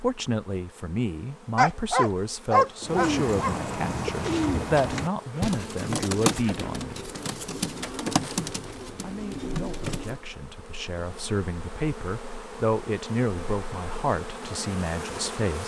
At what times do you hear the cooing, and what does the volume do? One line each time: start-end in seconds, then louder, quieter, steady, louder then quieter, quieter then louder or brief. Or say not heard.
2.8-10.2 quieter.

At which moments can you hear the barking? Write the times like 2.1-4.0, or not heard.
1.6-3.5.